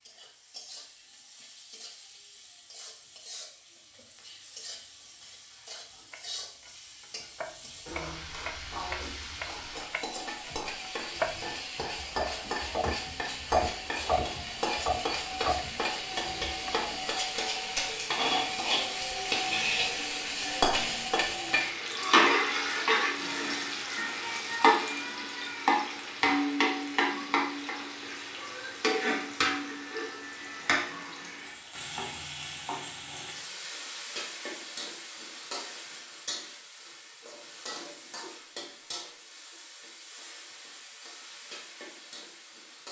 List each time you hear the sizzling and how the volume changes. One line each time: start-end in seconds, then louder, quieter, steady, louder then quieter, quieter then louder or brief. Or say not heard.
0.0-42.8 louder then quieter.